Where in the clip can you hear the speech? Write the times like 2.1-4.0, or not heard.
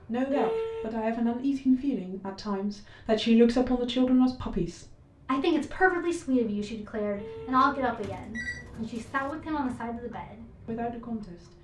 0.1-11.5.